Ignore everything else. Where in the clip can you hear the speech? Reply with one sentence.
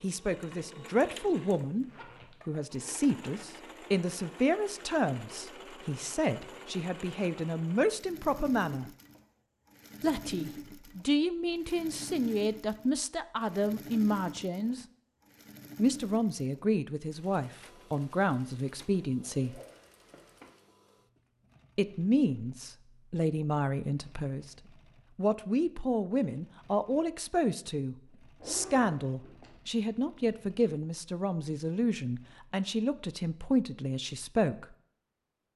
You can hear the speech from 0.0 to 1.9 s, from 2.5 to 8.9 s, from 10.0 to 14.8 s, from 15.8 to 19.6 s, from 21.8 to 24.6 s and from 25.1 to 34.8 s.